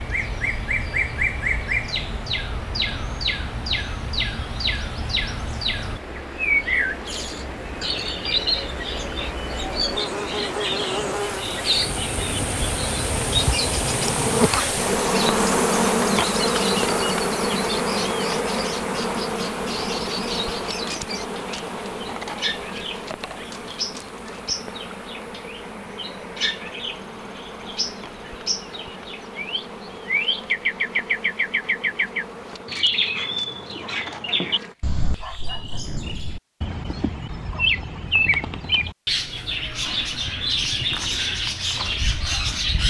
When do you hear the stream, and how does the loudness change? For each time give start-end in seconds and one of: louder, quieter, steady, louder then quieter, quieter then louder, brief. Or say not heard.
0.0-32.6 louder then quieter.